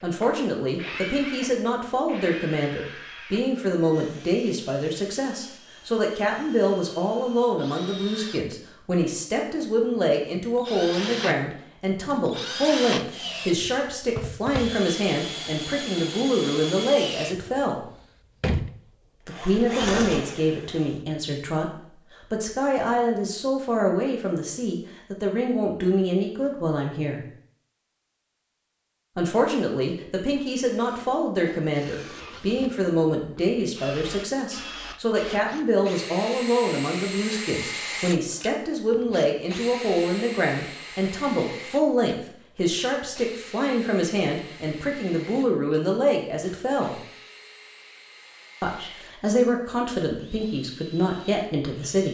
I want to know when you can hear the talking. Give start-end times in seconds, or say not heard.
0.0-17.9, 19.2-27.2, 29.1-47.0, 48.6-52.0.